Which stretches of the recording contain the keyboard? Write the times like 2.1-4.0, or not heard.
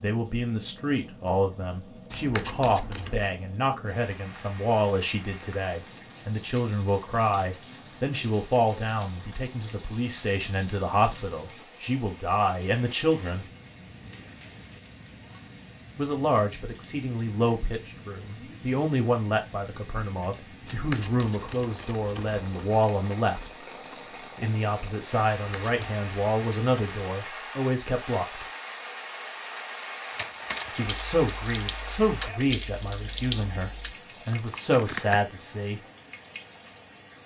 30.1-35.2.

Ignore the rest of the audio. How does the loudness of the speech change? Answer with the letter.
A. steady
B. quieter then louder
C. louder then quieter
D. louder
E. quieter
A.